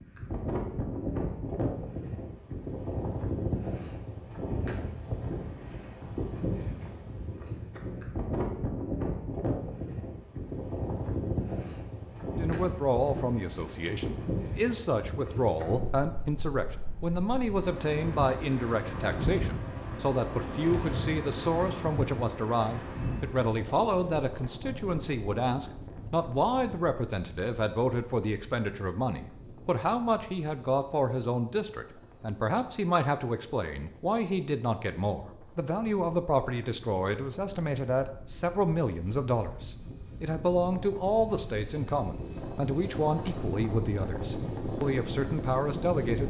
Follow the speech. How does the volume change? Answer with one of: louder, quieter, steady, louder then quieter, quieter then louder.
steady.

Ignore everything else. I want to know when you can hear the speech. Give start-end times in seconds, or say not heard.
12.3-46.2.